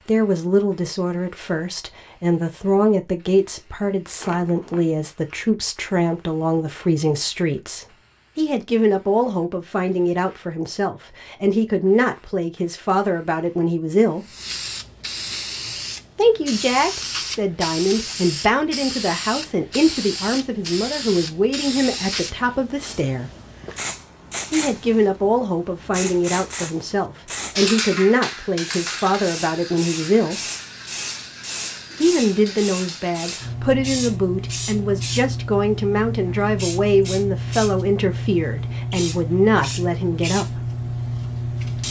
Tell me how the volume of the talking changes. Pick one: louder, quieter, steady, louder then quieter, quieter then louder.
steady.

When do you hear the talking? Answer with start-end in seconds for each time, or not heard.
0.1-14.3, 16.1-23.3, 24.5-30.4, 32.0-40.6.